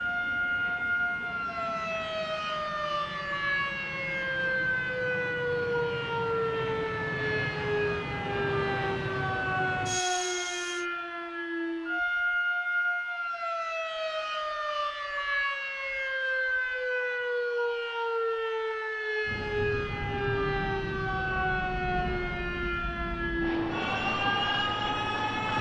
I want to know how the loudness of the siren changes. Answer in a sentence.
The loudness of the siren stays about the same.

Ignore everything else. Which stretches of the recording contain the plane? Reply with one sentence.
You can hear the plane from 0.0 to 10.8 s and from 19.2 to 25.5 s.